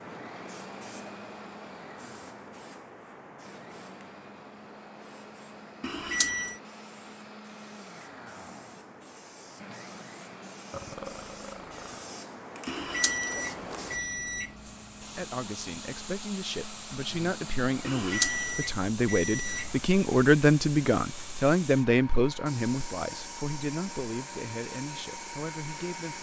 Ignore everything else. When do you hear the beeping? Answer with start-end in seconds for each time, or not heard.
5.8-6.6, 12.7-14.5, 17.9-19.7.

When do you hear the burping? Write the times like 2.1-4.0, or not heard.
10.7-12.0.